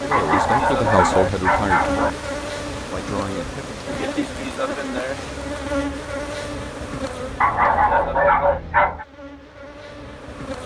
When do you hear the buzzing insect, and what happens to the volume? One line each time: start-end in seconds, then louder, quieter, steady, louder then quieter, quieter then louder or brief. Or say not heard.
0.0-10.6 quieter.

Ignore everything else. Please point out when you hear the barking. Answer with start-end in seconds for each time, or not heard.
0.1-2.1, 7.4-9.1.